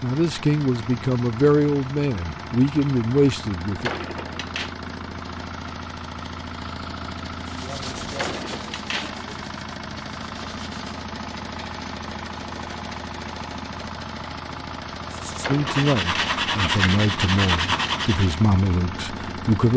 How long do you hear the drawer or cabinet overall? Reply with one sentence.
You can hear the drawer or cabinet for 3 seconds altogether.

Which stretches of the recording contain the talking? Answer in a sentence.
The talking can be heard from 0.0 to 3.9 s and from 15.4 to 19.7 s.